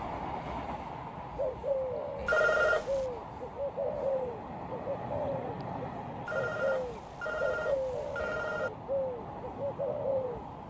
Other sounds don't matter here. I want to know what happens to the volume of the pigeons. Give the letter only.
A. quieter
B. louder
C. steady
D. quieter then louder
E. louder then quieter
C.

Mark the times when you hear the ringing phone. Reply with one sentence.
The ringing phone can be heard from 2.2 to 3.0 s and from 6.2 to 8.7 s.